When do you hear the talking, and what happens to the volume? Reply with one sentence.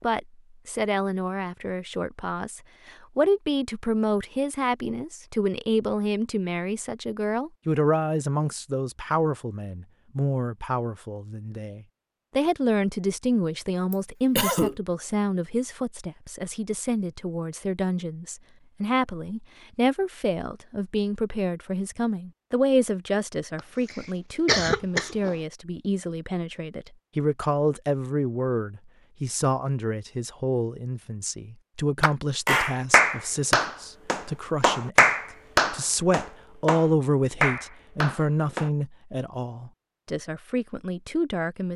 The talking can be heard from 0.0 to 41.7 s, at a steady volume.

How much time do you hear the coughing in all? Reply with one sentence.
You can hear the coughing for 3 seconds altogether.